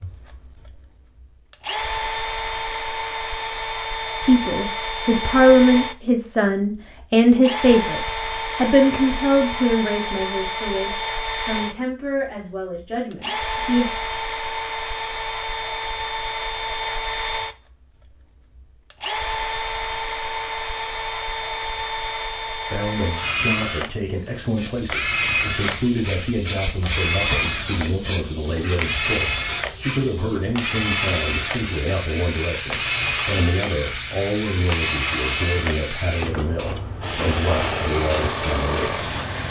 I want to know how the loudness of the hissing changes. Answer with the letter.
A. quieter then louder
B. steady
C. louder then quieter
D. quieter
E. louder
B.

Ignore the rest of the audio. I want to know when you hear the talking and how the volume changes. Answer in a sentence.
The talking can be heard from 4.2 to 13.8 s, getting quieter; and from 22.5 to 39.0 s, at a steady volume.